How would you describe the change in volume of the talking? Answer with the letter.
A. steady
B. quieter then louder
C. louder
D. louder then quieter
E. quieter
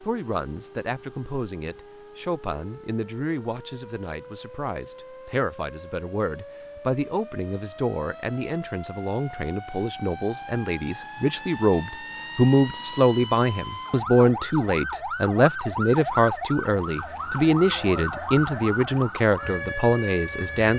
C.